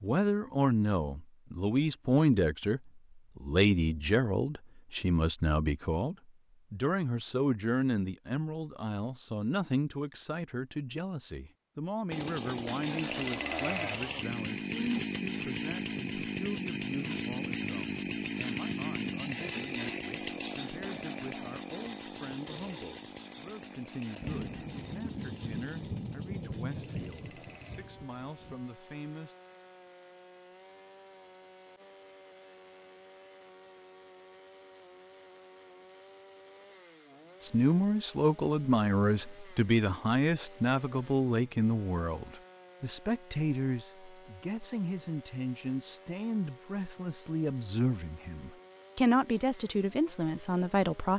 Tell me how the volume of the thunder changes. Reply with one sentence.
The loudness of the thunder goes down.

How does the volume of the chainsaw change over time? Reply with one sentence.
The loudness of the chainsaw goes down.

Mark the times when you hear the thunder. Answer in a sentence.
You can hear the thunder from 24.2 to 28.6 s.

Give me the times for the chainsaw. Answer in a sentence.
The chainsaw can be heard from 12.1 to 51.1 s.